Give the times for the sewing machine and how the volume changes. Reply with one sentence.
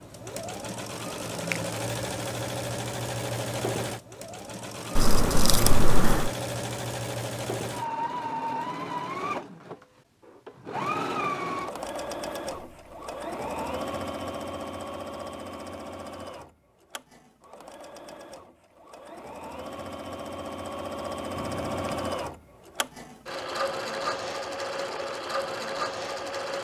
You can hear the sewing machine from 0.0 to 26.5 s, getting quieter then louder.